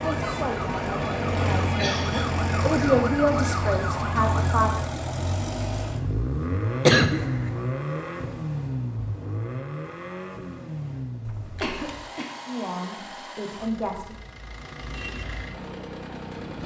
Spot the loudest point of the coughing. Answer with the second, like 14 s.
7 s.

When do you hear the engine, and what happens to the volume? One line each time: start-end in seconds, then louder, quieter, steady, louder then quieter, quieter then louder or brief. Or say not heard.
0.0-16.6 quieter.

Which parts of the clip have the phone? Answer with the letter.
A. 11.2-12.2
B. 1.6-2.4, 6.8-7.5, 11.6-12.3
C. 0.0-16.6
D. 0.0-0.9
A.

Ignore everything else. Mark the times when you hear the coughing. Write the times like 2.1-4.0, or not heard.
1.6-2.4, 6.8-7.5, 11.6-12.3.